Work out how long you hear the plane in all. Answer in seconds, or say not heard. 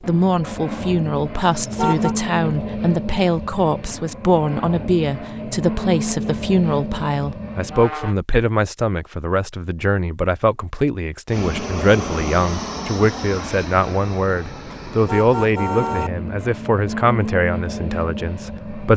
16 s.